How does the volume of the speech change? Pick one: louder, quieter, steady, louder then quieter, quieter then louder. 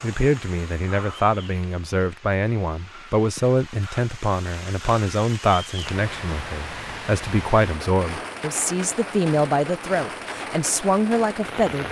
steady.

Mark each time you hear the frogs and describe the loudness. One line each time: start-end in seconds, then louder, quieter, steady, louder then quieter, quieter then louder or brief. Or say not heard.
not heard.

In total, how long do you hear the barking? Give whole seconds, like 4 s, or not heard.
not heard.